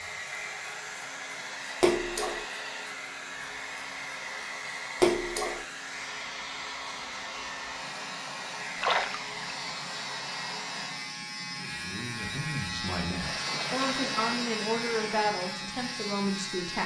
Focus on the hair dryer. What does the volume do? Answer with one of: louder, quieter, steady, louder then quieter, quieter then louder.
steady.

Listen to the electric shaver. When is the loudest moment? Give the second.
14 s.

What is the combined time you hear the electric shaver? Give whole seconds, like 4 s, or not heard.
17 s.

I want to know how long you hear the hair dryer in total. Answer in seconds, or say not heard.
11 s.